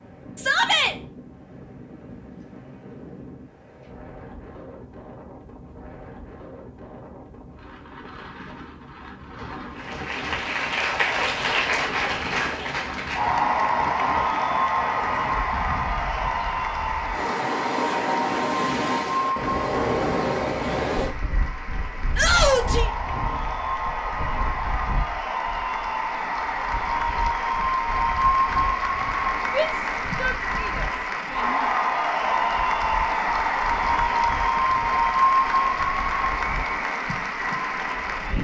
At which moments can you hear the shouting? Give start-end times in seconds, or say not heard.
0.3-0.9, 22.1-22.9, 29.5-31.6.